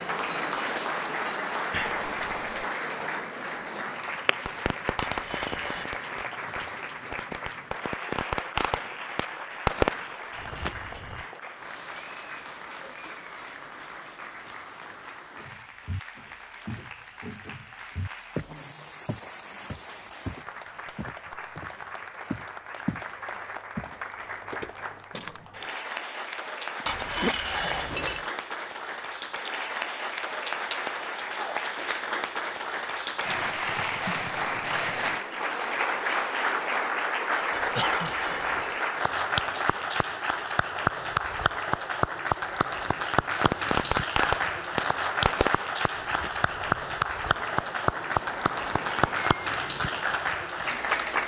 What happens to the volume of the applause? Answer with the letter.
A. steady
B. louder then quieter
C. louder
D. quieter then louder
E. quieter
D.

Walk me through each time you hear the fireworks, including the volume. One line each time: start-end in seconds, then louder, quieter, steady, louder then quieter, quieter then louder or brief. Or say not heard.
4.5-11.2 quieter then louder
43.4-50.2 quieter then louder.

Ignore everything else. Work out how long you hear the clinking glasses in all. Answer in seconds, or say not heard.
4 s.